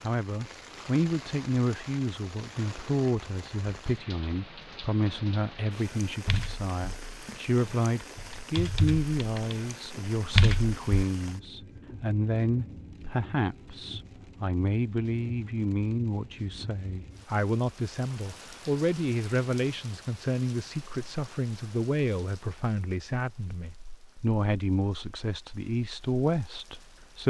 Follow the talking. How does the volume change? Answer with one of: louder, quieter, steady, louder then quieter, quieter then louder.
steady.